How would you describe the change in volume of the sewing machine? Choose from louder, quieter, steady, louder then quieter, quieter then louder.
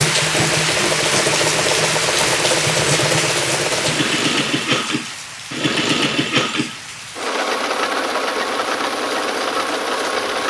steady.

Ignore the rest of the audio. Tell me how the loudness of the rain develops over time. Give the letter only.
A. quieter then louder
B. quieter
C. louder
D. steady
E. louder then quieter
B.